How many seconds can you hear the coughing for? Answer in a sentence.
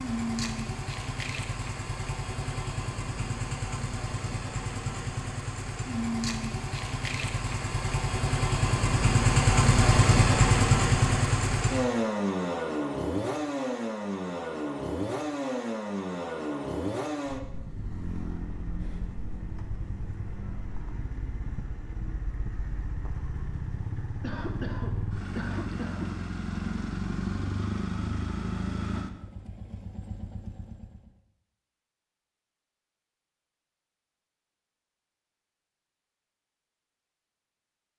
You can hear the coughing for 2 seconds altogether.